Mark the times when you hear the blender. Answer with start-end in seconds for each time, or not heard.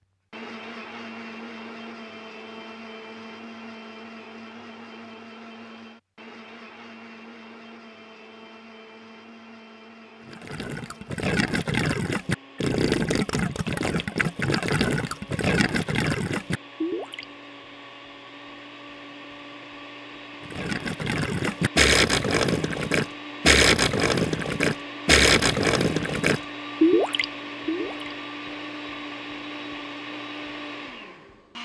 0.3-31.6.